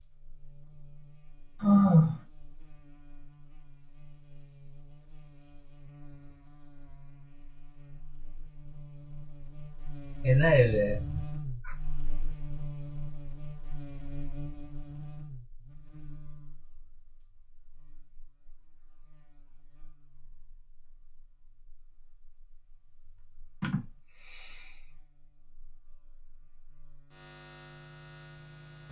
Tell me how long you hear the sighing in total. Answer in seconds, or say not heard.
3 s.